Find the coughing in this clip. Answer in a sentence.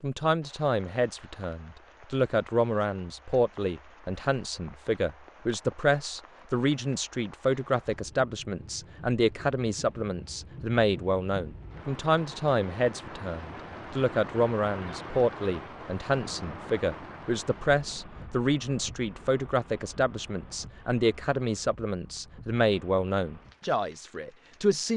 The coughing can't be heard in this clip.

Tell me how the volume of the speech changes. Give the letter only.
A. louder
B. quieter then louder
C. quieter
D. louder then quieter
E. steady
E.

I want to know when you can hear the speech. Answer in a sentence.
The speech can be heard from 0.0 to 24.9 s.